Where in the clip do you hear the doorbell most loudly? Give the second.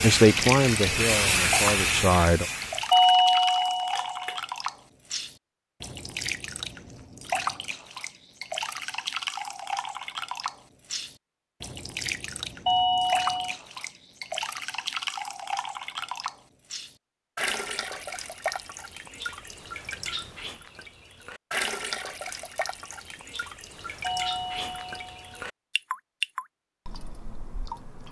3 s.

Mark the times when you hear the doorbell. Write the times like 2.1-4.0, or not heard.
2.9-4.4, 12.7-13.6, 24.0-25.4.